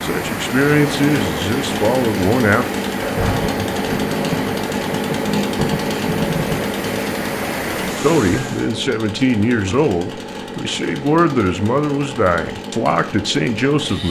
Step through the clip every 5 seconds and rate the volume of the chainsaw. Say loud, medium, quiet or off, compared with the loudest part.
loud, loud, medium.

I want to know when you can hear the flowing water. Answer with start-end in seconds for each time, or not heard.
0.0-8.7.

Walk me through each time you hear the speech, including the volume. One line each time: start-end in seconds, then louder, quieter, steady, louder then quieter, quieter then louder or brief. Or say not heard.
0.0-2.6 brief
8.0-14.0 steady.